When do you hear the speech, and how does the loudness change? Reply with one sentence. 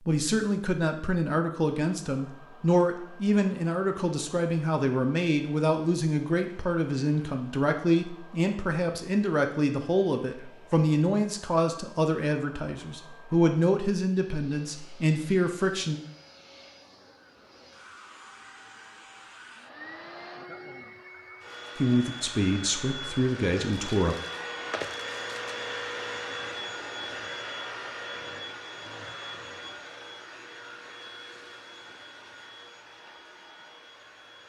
You can hear the speech from 0.1 to 16.0 s, at a steady volume; and briefly from 21.8 to 24.1 s.